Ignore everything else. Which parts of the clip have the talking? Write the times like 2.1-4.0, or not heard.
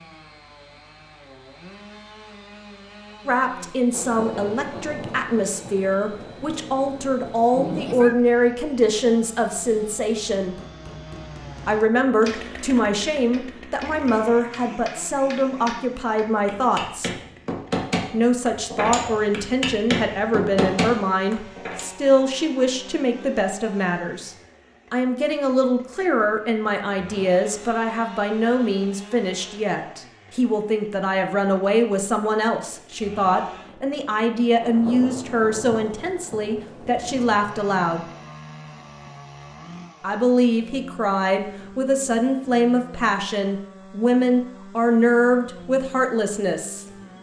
3.2-10.6, 11.7-17.1, 18.1-38.0, 40.0-46.9.